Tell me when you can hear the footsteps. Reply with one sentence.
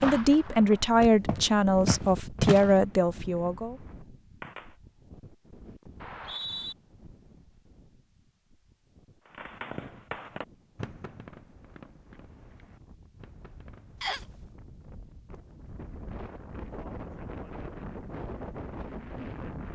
The footsteps can be heard from 0.0 to 2.7 s.